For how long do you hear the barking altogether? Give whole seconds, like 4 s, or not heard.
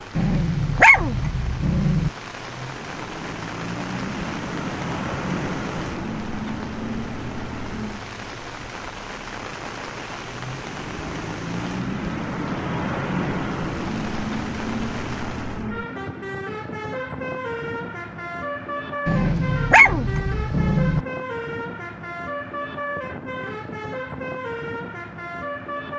4 s.